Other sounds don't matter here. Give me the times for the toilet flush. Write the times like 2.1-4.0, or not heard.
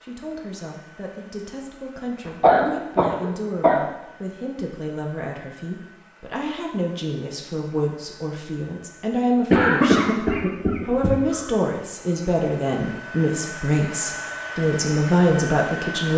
not heard.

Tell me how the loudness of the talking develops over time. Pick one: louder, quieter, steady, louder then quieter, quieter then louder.
louder.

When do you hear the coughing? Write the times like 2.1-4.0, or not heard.
2.2-3.9, 9.5-11.4.